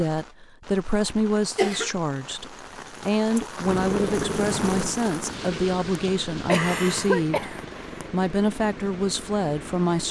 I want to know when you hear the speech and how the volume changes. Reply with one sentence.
You can hear the speech from 0.0 to 10.0 s, at a steady volume.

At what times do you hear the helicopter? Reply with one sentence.
You can hear the helicopter from 3.6 to 10.0 s.